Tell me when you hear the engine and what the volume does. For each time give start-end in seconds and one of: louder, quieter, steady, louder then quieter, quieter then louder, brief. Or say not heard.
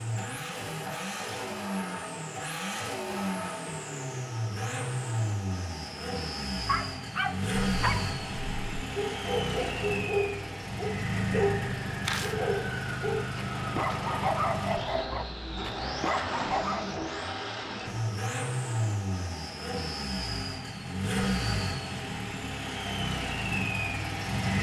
0.0-24.5 steady.